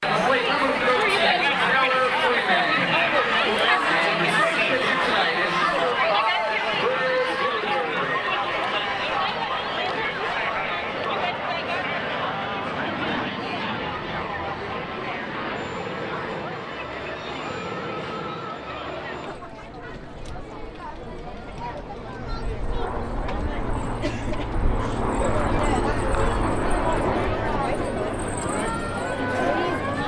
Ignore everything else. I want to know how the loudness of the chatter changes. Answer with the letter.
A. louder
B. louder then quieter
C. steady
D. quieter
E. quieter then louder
E.